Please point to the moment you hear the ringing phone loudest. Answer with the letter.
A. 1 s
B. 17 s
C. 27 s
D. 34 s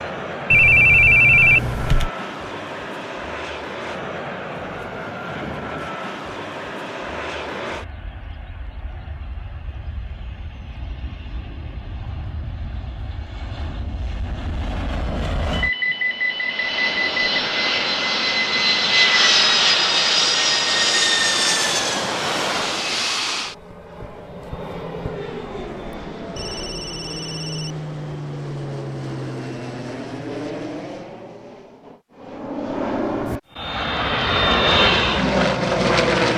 A.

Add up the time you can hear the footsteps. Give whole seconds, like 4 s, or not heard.
not heard.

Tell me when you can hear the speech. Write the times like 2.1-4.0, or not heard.
not heard.